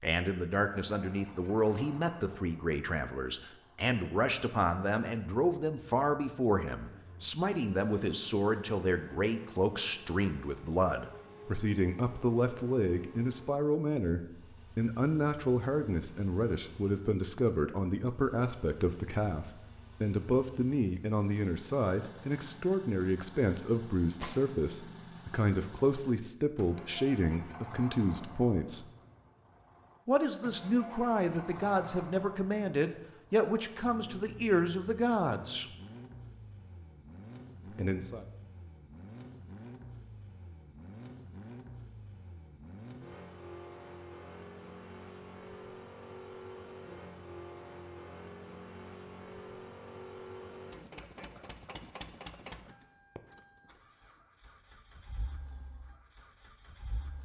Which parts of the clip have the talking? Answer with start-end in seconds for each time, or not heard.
0.0-28.9, 30.1-35.7, 37.7-38.2.